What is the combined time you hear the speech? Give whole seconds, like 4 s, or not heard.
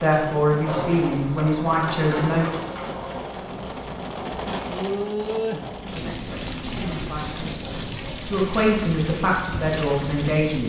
7 s.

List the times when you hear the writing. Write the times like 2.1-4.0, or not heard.
not heard.